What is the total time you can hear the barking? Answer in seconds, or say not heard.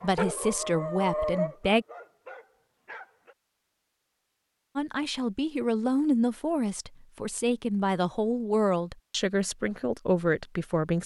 3 s.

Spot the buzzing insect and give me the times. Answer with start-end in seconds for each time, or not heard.
not heard.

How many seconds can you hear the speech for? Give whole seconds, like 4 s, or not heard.
8 s.